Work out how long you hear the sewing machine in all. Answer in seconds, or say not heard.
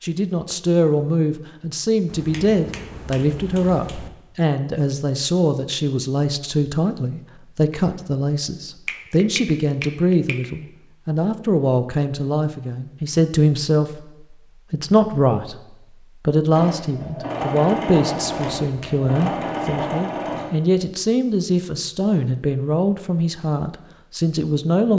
4 s.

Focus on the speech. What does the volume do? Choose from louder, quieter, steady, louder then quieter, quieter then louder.
steady.